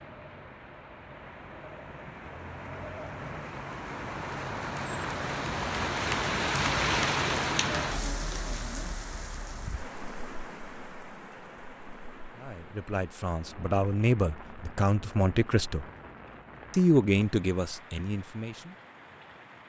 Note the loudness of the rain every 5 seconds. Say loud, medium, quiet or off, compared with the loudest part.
medium, loud, quiet, quiet.